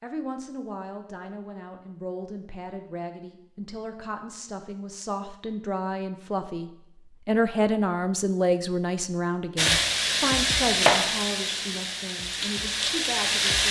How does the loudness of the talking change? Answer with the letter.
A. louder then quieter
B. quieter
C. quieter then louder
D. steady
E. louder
A.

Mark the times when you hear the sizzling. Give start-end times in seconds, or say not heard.
9.6-13.6.